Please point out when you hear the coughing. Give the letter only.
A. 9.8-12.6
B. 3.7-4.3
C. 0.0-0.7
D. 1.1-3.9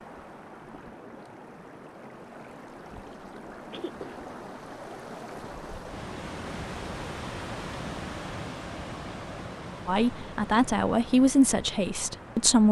B.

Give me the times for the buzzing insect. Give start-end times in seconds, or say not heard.
not heard.